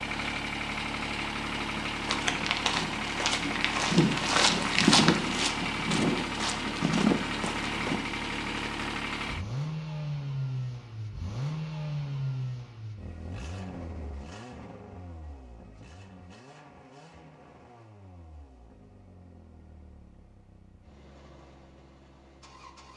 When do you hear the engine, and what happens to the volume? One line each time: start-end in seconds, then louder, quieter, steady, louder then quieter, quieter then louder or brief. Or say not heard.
0.0-22.9 quieter.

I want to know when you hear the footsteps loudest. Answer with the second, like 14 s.
5 s.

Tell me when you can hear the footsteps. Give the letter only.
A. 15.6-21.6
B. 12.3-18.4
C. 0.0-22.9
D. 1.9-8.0
D.